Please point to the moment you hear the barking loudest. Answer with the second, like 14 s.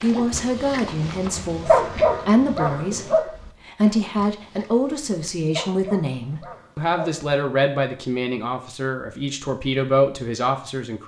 2 s.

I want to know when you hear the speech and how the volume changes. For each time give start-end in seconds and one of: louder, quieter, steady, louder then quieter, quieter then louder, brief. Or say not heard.
0.0-11.0 steady.